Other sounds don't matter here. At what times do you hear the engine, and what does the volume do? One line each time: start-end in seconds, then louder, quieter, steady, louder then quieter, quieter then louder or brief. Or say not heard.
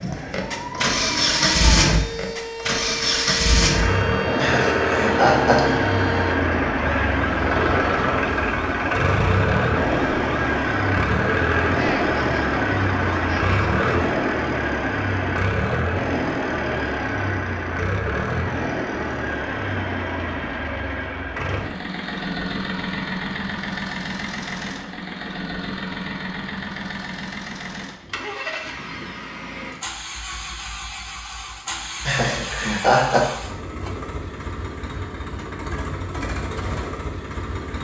0.0-37.7 quieter.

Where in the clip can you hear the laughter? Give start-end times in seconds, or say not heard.
4.3-5.8, 32.0-33.2.